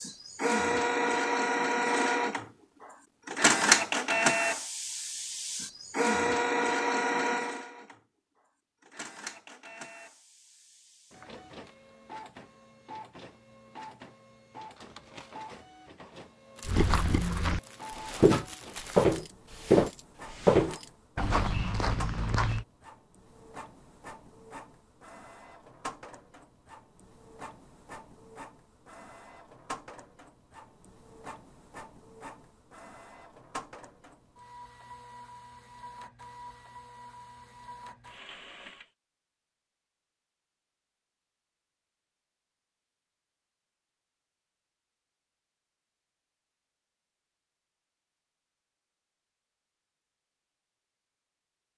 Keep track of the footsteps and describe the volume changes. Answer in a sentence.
The loudness of the footsteps goes up, then down.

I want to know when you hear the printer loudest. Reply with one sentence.
The loudest moment of the printer is at 4 seconds.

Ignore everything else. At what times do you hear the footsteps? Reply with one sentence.
The footsteps can be heard from 16.6 to 22.6 s.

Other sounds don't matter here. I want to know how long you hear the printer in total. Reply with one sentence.
You can hear the printer for 39 seconds altogether.